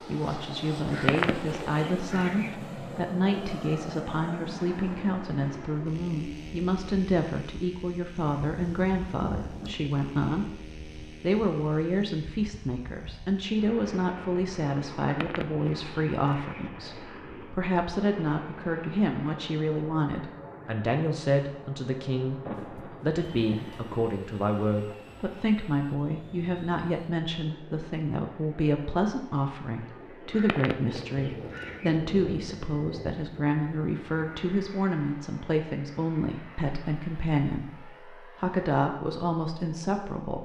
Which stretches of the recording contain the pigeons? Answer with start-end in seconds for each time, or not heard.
0.9-2.5, 15.0-16.7, 30.3-32.0.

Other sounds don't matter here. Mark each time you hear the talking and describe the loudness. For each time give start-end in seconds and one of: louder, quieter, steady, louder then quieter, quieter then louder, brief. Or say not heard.
0.0-40.4 steady.